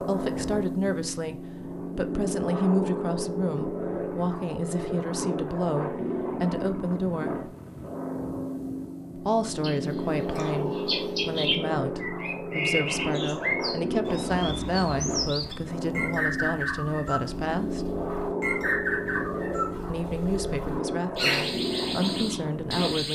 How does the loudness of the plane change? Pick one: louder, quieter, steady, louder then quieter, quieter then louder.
steady.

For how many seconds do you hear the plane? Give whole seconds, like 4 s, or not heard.
23 s.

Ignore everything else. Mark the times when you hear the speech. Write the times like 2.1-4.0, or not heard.
0.0-7.5, 9.2-17.9, 19.9-23.1.